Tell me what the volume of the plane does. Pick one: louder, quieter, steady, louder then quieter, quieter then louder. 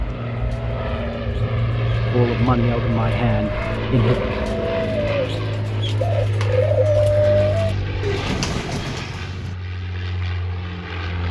quieter.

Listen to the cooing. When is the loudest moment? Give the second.
7 s.